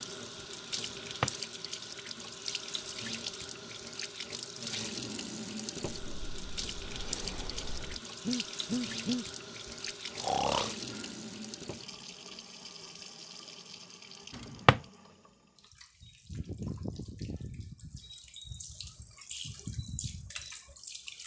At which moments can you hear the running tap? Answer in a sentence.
You can hear the running tap from 0.0 to 21.2 s.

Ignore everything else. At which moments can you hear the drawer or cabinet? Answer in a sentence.
You can hear the drawer or cabinet from 0.9 to 1.4 s and from 14.3 to 14.8 s.